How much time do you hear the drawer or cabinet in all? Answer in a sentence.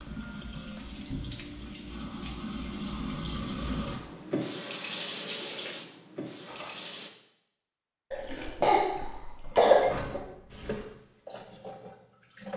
The drawer or cabinet can be heard for 2 seconds in total.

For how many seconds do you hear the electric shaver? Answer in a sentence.
The electric shaver can't be heard in this clip.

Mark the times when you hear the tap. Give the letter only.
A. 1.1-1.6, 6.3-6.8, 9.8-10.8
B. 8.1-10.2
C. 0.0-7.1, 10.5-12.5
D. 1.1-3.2
C.